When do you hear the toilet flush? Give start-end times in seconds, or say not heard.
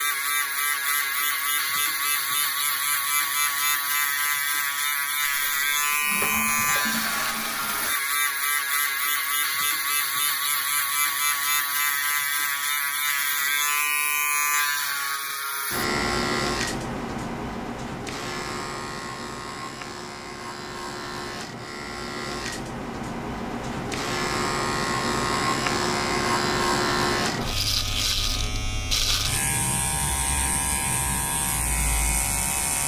5.2-8.0.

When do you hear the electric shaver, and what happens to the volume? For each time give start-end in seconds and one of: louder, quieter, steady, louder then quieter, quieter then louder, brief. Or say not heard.
0.0-32.8 steady.